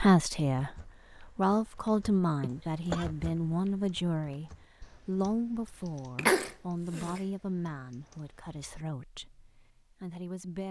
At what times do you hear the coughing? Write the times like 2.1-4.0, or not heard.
2.4-3.0, 6.2-7.2.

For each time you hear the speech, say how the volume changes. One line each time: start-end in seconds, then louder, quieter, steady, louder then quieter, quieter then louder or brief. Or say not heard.
0.0-10.6 quieter.